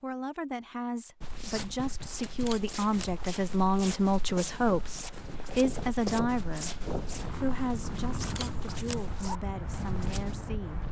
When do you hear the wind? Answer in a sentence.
You can hear the wind from 4.2 to 10.8 s.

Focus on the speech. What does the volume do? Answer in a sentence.
The volume of the speech goes up, then down.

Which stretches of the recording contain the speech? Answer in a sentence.
You can hear the speech from 0.0 to 6.7 s and from 7.3 to 10.8 s.